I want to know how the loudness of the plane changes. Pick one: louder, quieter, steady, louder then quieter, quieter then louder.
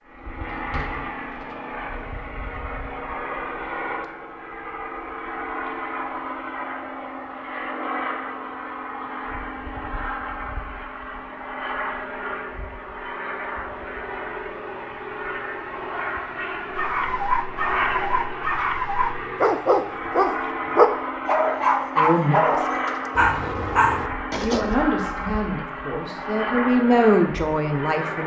steady.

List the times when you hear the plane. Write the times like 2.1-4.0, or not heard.
0.0-28.2.